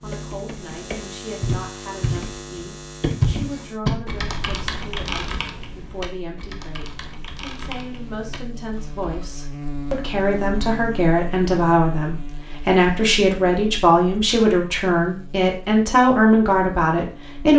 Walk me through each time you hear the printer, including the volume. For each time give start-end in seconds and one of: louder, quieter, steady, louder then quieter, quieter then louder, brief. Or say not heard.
not heard.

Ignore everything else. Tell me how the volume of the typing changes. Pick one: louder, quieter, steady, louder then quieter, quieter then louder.
louder then quieter.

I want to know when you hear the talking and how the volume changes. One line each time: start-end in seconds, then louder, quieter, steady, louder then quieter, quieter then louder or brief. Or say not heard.
0.0-17.5 louder.